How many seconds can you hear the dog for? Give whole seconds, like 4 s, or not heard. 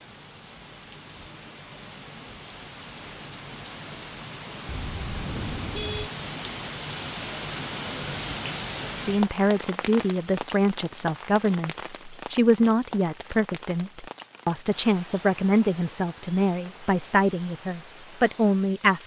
not heard.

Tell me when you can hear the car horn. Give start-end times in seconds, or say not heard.
4.7-6.1.